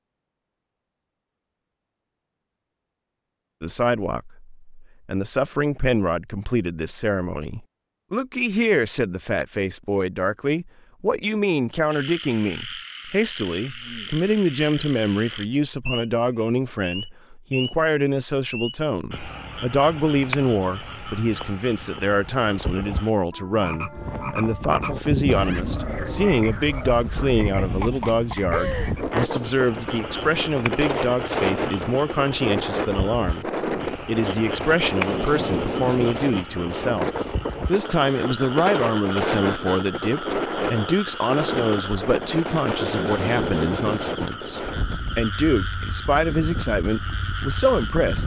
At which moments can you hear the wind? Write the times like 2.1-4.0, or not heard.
23.9-48.2.